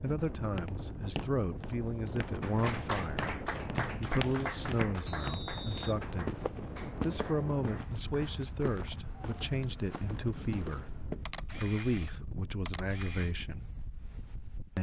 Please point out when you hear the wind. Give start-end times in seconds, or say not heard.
0.0-14.7.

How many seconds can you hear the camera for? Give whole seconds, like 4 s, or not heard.
2 s.